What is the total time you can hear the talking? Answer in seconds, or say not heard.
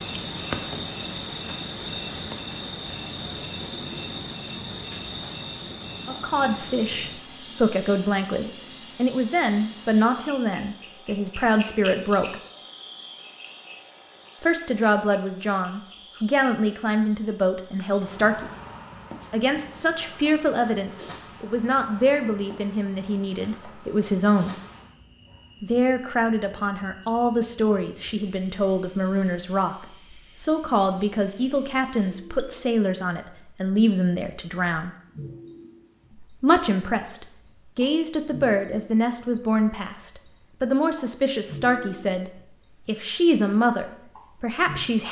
34 s.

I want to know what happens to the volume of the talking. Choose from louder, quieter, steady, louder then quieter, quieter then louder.
steady.